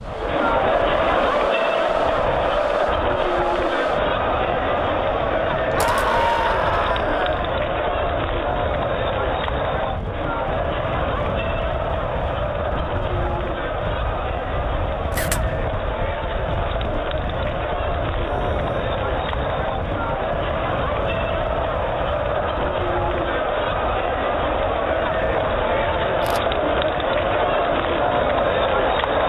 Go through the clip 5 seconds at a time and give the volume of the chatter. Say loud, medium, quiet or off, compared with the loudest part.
loud, loud, medium, medium, loud, loud.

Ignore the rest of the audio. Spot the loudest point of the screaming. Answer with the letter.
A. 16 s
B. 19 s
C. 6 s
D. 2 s
C.